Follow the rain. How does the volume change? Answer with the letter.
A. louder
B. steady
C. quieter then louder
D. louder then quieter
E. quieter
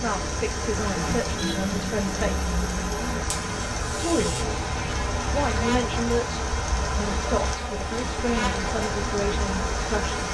B.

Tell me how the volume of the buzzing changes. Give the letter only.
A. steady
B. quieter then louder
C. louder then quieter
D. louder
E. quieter
A.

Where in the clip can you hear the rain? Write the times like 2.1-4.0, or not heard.
0.0-10.2.